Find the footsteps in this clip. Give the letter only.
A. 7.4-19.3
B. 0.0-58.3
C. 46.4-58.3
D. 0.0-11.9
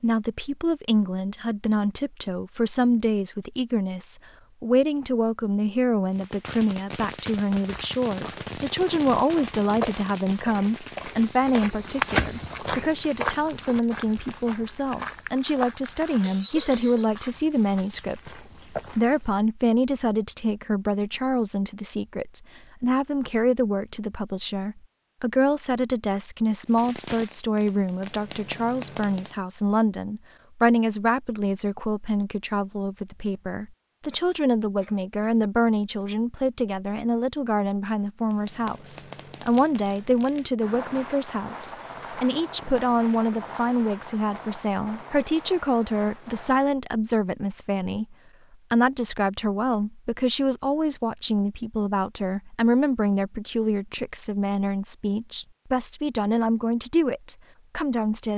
A.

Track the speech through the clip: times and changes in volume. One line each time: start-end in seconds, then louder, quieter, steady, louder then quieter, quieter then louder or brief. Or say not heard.
0.0-58.3 steady.